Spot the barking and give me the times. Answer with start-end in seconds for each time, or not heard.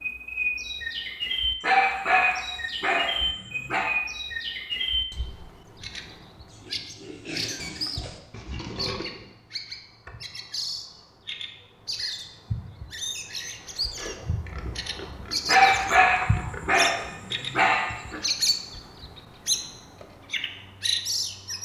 1.6-3.9, 15.4-18.2.